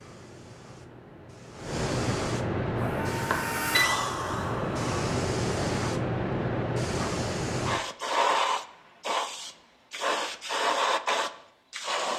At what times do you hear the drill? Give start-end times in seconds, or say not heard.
2.6-5.0.